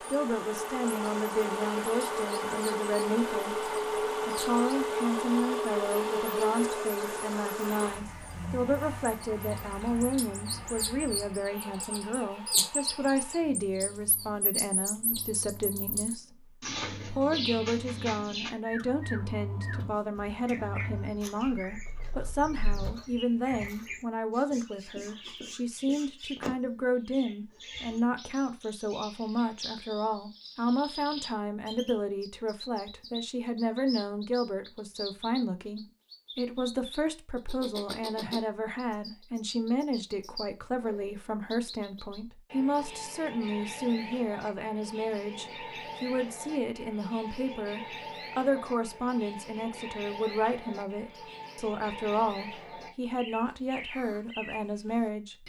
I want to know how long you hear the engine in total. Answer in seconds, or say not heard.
23 s.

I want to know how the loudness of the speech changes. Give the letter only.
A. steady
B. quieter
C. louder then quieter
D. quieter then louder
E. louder
A.